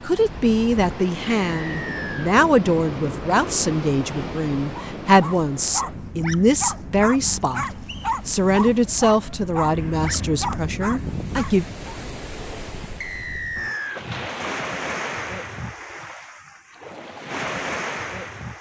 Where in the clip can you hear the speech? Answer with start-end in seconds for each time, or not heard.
0.1-11.7.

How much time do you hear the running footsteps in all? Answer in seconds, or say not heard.
not heard.